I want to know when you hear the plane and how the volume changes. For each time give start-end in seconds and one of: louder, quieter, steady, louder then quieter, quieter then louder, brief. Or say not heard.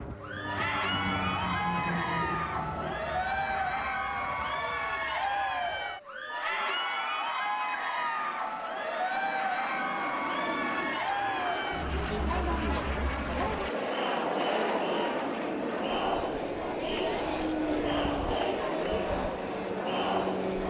0.0-20.6 quieter then louder.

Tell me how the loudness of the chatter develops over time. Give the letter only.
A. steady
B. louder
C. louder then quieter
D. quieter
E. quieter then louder
A.